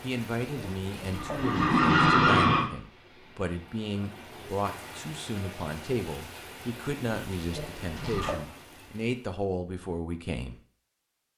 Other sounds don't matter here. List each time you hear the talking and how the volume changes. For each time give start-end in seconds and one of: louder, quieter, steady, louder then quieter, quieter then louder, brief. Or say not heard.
0.0-10.6 steady.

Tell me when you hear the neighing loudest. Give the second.
2 s.